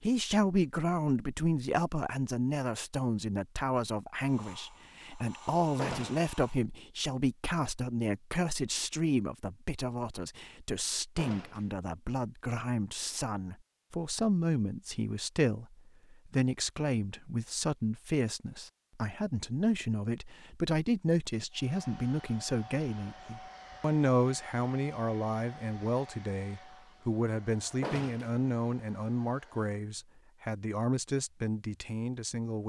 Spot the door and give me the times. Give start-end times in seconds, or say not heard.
5.8-6.3, 11.2-11.7, 27.8-28.4.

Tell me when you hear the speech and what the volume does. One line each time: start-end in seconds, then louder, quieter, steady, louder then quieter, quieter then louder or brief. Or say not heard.
0.0-32.6 steady.